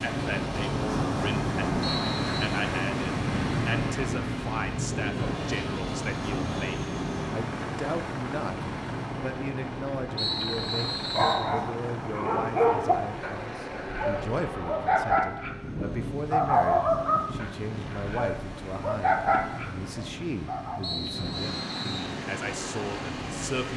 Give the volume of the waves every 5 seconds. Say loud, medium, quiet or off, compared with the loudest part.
loud, medium, quiet, quiet, medium.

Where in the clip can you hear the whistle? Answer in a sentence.
The whistle can be heard from 1.8 to 2.5 s, from 10.2 to 11.4 s and from 20.8 to 22.1 s.